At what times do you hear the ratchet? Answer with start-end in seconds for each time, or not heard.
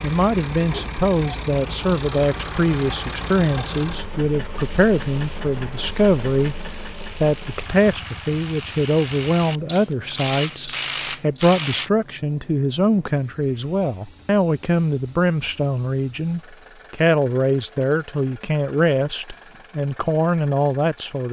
4.0-11.9.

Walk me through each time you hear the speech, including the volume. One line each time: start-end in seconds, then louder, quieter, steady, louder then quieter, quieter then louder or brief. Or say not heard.
0.0-6.6 steady
7.2-21.2 steady.